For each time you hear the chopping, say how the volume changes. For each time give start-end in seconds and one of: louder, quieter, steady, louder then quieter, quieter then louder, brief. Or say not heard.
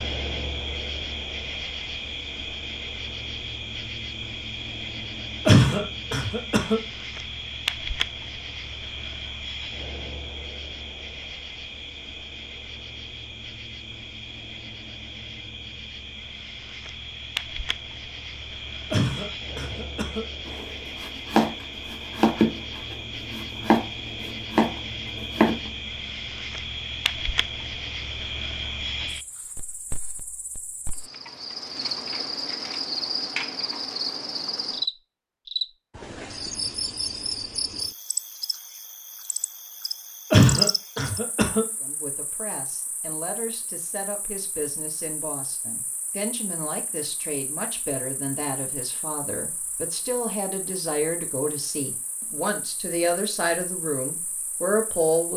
20.4-25.7 quieter then louder.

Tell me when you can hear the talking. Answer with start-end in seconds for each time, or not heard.
41.8-55.3.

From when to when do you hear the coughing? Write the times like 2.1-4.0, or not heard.
5.5-6.8, 18.9-20.2, 40.3-41.6.